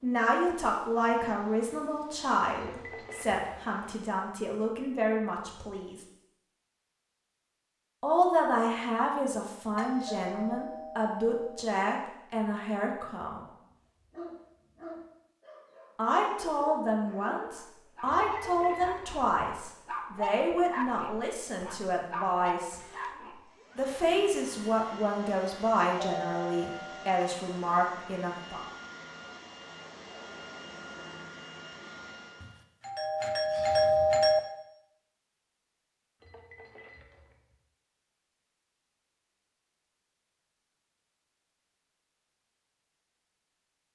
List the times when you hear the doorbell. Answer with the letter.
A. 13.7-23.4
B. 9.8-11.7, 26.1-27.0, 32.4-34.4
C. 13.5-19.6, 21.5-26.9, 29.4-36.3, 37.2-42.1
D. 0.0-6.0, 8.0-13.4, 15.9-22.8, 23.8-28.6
B.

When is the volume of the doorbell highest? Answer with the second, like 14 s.
34 s.